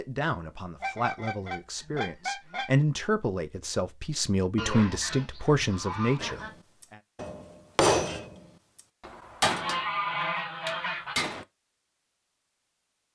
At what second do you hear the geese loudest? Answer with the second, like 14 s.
10 s.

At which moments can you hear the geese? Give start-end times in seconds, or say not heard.
0.8-2.7, 4.5-6.5, 9.4-11.2.